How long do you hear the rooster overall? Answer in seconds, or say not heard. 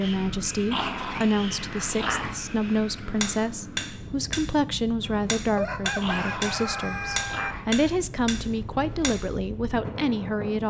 2 s.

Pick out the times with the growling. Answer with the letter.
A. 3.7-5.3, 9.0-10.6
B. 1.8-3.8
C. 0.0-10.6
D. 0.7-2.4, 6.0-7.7
D.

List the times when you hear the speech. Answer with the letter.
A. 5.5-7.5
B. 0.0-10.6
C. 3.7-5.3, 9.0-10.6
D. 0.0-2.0
B.